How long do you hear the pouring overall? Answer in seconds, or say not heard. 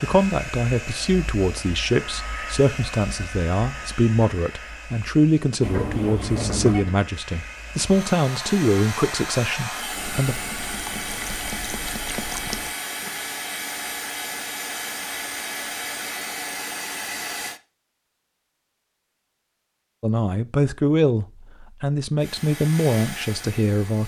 3 s.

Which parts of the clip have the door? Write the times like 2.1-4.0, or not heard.
5.6-7.0.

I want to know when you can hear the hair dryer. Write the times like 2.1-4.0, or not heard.
0.0-17.6, 22.1-24.0.